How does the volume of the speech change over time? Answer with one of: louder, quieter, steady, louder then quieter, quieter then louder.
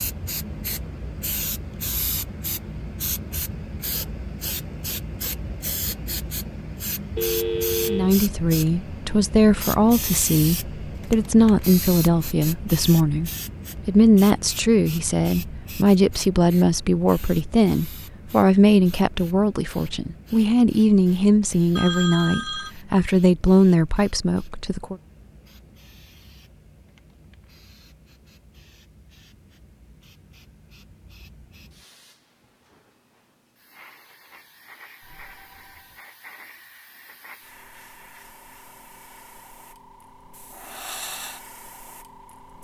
steady.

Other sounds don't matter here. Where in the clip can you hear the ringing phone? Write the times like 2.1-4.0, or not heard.
7.2-8.2, 21.8-22.7, 35.0-36.0.